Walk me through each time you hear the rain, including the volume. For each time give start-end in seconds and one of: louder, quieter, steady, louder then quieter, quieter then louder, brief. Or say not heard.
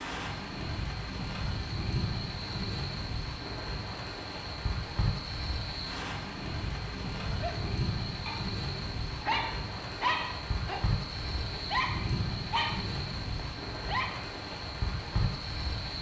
0.0-15.9 steady.